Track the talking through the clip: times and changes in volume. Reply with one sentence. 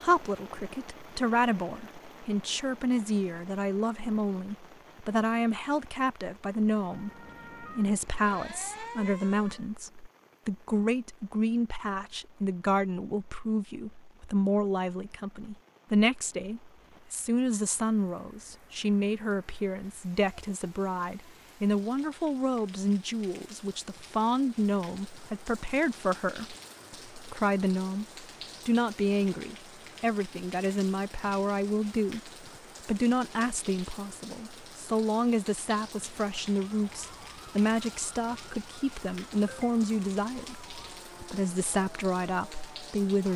You can hear the talking from 0.0 to 43.3 s, at a steady volume.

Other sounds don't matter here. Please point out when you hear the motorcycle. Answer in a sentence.
You can't hear the motorcycle here.